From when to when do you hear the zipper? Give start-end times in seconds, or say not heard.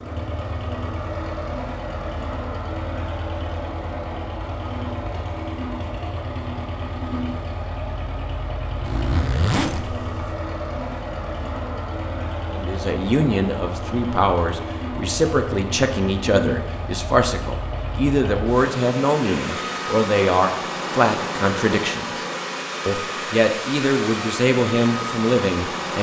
8.8-10.3.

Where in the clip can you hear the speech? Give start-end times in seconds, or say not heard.
12.5-22.2, 22.9-25.9.